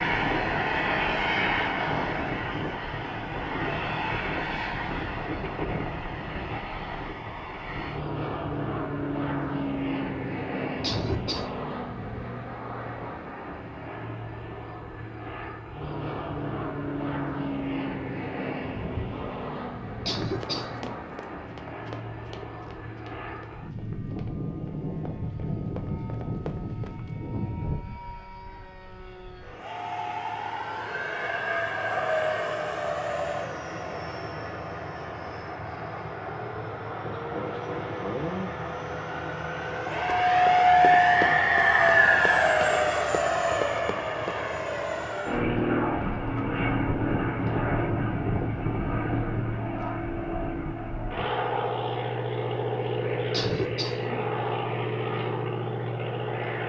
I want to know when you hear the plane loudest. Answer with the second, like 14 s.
41 s.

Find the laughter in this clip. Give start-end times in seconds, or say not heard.
10.8-11.4, 20.1-21.0, 53.3-54.2.